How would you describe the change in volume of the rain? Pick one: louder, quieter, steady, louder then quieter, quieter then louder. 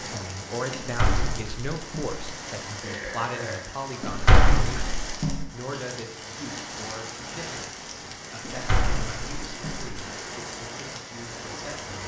steady.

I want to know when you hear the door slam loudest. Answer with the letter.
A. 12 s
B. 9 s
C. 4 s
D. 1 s
C.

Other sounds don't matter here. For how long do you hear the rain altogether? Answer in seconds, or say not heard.
12 s.